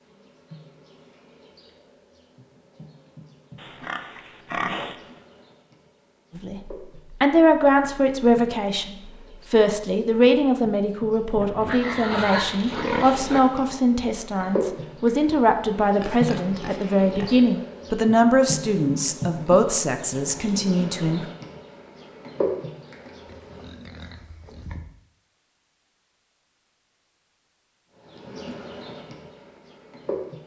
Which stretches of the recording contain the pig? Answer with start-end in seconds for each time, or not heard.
3.5-5.0, 11.4-13.4, 15.9-17.5, 23.2-24.9.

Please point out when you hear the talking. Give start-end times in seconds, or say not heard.
6.3-21.2.